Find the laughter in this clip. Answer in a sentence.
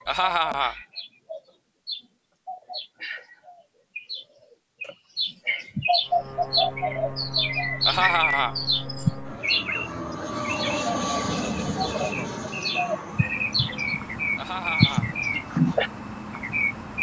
You can hear the laughter from 0.1 to 0.8 s, from 7.8 to 8.6 s and from 14.3 to 15.1 s.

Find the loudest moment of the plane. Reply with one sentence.
The volume of the plane peaks at 11 seconds.